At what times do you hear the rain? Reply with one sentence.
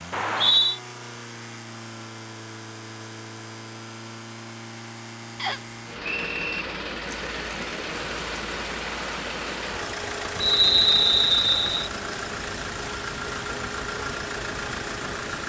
You can hear the rain from 7.0 to 15.4 s.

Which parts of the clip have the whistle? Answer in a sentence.
You can hear the whistle from 0.1 to 0.8 s, from 5.3 to 6.7 s and from 10.4 to 11.9 s.